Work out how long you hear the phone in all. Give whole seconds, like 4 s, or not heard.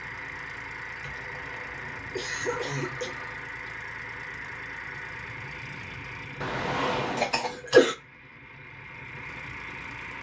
3 s.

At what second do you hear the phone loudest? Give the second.
7 s.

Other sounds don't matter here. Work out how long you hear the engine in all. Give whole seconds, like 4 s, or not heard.
10 s.